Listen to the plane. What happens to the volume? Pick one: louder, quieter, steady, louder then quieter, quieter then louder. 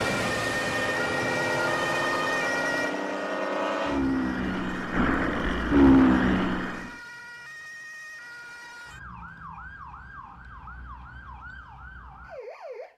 louder.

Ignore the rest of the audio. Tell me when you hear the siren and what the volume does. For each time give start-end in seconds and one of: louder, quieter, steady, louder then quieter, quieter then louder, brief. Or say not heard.
0.0-12.9 quieter.